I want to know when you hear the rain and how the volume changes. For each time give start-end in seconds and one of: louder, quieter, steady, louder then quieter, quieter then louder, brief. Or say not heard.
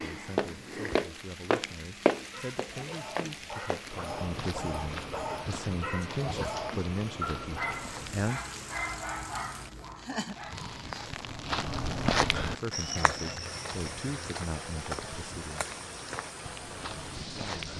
0.0-17.7 steady.